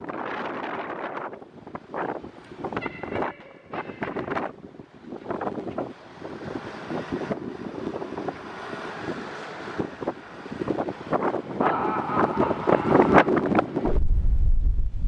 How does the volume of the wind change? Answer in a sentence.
The volume of the wind goes up.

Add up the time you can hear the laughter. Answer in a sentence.
You can hear the laughter for 3 seconds altogether.